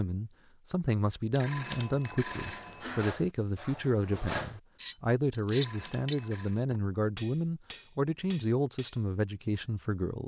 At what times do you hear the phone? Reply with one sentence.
You can hear the phone from 1.3 to 3.0 s and from 5.5 to 6.6 s.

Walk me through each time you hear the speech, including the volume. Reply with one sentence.
You can hear the speech from 0.0 to 10.2 s, at a steady volume.